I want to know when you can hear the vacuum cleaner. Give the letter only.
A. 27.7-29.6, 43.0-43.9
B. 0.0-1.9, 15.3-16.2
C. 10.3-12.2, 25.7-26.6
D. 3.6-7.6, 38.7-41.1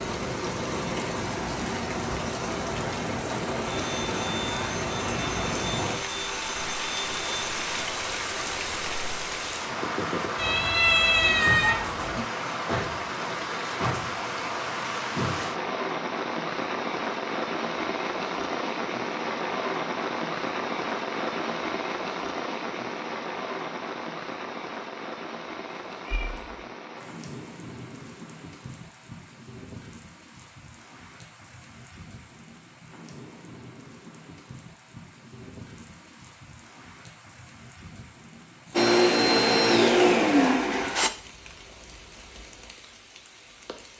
D.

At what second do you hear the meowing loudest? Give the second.
11 s.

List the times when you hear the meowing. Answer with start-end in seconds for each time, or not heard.
10.3-12.2, 25.7-26.6.